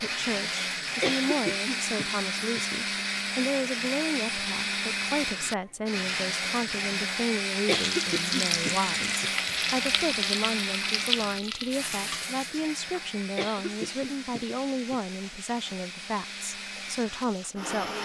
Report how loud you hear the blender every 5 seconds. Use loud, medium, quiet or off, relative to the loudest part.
loud, loud, medium, medium.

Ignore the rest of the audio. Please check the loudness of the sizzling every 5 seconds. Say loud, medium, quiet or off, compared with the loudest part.
off, loud, loud, quiet.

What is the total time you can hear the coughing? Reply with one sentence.
You can hear the coughing for 5 seconds altogether.